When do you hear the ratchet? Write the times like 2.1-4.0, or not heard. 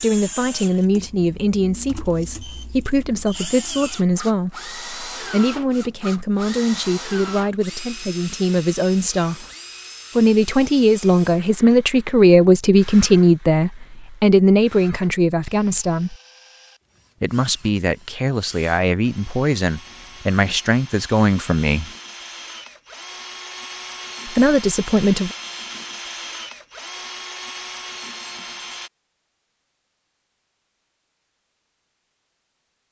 not heard.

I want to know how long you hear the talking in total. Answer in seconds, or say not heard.
21 s.